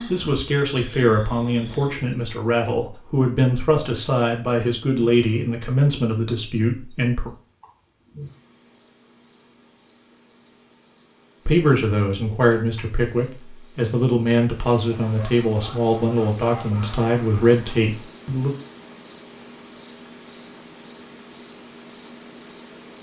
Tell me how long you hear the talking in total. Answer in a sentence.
You can hear the talking for 14 seconds altogether.